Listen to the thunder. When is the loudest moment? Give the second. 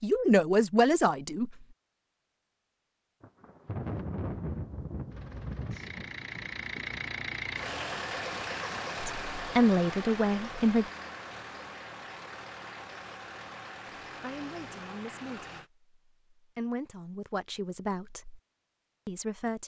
4 s.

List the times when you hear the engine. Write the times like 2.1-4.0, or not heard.
5.0-15.7.